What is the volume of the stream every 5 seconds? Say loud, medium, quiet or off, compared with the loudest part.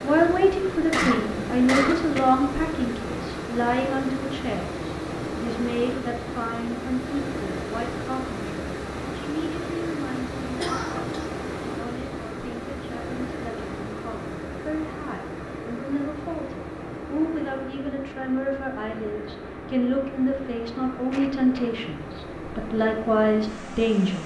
loud, loud, loud, medium, medium.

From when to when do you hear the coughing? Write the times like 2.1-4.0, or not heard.
0.9-2.2, 10.6-11.2, 21.1-21.8.